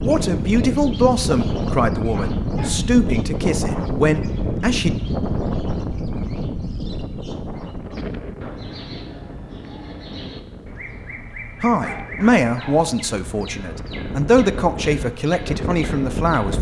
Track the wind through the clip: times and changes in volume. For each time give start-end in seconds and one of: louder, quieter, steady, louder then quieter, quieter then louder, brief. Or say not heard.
0.0-16.5 quieter then louder.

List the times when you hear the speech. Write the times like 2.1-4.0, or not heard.
0.0-5.0, 11.6-16.5.